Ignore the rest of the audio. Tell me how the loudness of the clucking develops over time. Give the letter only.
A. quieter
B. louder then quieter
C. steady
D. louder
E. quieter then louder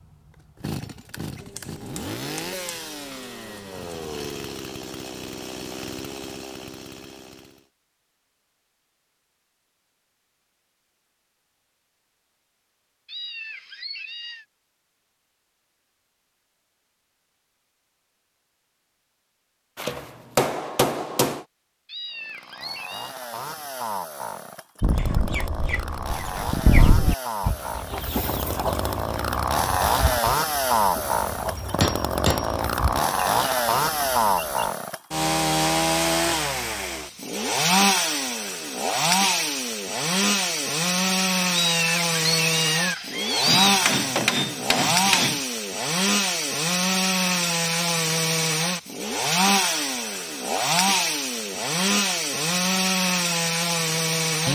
A.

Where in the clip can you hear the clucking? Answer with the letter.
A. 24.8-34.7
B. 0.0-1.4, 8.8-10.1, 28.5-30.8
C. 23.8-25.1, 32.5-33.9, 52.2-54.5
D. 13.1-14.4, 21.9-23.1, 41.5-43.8
A.